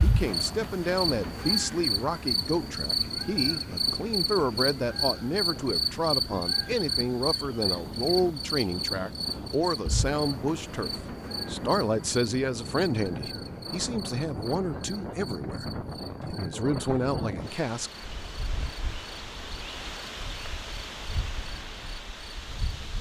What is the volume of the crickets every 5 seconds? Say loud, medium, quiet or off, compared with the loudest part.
loud, loud, medium, quiet, quiet.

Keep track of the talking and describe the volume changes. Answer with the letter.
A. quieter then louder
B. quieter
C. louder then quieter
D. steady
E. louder
D.